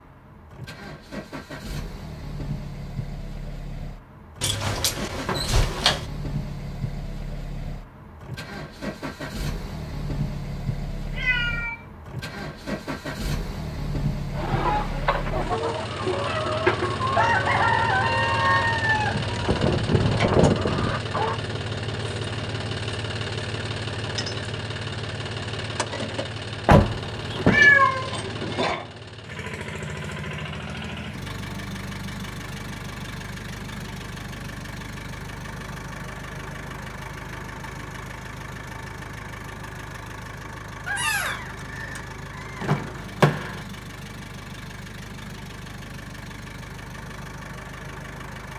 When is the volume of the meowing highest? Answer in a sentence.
The volume of the meowing peaks at 28 seconds.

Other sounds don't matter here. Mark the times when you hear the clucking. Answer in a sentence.
The clucking can be heard from 14.3 to 21.4 s.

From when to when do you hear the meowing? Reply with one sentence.
The meowing can be heard from 11.1 to 11.8 s, from 27.4 to 28.4 s and from 40.9 to 42.6 s.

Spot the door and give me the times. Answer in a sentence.
You can hear the door from 4.4 to 6.0 s, from 26.6 to 27.7 s and from 42.6 to 43.6 s.